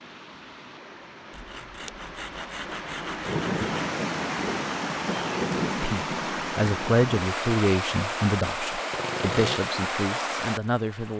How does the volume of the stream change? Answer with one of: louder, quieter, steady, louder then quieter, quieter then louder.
louder.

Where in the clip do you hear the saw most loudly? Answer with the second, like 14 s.
9 s.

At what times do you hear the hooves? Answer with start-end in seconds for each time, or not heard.
not heard.